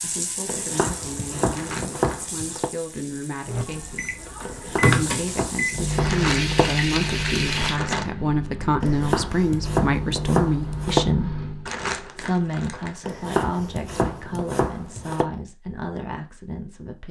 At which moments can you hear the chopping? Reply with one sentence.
The chopping can be heard from 0.5 to 2.7 s, from 4.5 to 6.7 s, from 8.8 to 11.1 s and from 13.0 to 15.3 s.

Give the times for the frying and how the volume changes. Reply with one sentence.
You can hear the frying from 0.0 to 7.8 s, getting quieter then louder.